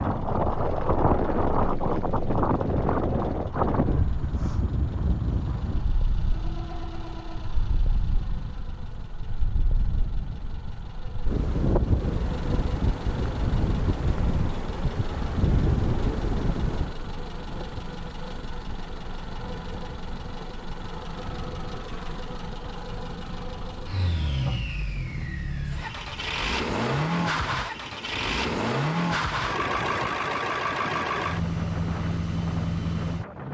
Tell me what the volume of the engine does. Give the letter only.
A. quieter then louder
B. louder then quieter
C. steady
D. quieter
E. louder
E.